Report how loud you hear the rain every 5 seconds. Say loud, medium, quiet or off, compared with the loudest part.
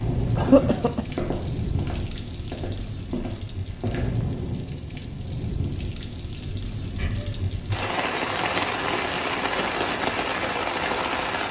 medium, loud, loud.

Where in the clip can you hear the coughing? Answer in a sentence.
The coughing can be heard from 0.3 to 1.1 s and from 7.0 to 7.4 s.